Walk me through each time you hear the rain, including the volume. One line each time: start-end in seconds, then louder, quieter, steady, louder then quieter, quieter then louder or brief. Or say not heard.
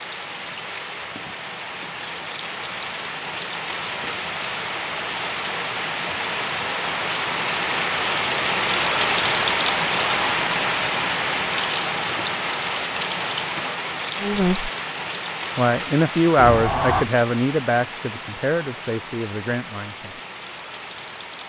0.0-21.4 louder then quieter.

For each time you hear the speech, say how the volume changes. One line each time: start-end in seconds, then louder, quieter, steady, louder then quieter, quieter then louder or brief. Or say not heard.
14.2-14.7 brief
15.6-20.1 quieter.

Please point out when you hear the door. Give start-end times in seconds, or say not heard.
16.4-17.1.